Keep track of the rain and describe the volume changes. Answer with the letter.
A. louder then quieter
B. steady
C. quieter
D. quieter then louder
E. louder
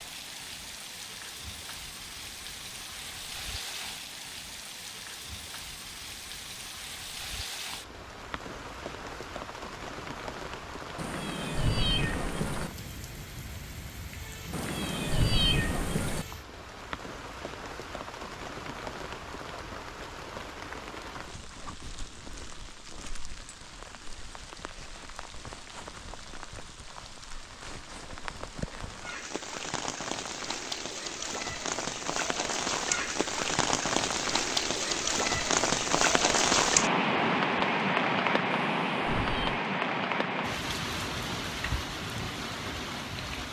E.